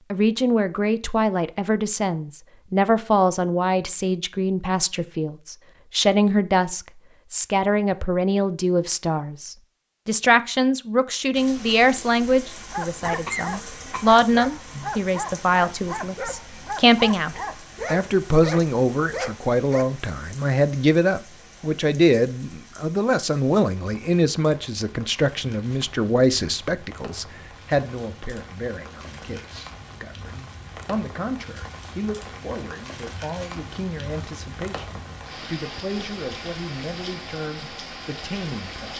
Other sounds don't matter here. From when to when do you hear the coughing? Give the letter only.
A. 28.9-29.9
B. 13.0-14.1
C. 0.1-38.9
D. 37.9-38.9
B.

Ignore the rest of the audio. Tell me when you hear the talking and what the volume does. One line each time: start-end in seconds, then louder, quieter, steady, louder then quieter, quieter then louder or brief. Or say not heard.
0.1-38.9 quieter.